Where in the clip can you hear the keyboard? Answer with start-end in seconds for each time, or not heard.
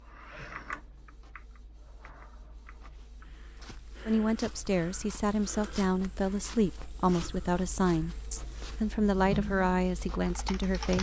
0.0-3.1, 9.1-10.9.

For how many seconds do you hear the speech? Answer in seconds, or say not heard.
7 s.